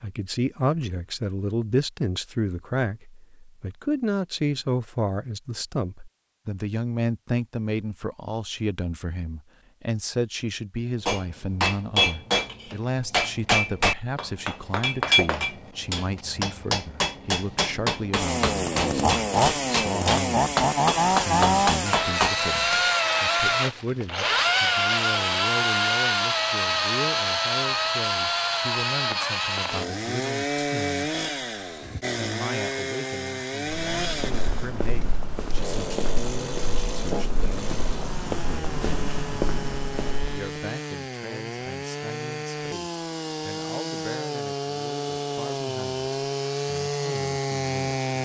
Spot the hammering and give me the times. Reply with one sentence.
The hammering can be heard from 11.1 to 22.9 s.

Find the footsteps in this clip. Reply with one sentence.
You can hear the footsteps from 33.8 to 40.5 s.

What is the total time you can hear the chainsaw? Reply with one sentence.
You can hear the chainsaw for 30 seconds altogether.